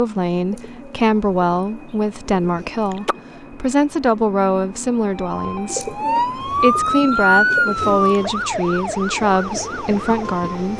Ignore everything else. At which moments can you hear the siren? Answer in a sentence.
The siren can be heard from 5.1 to 10.7 s.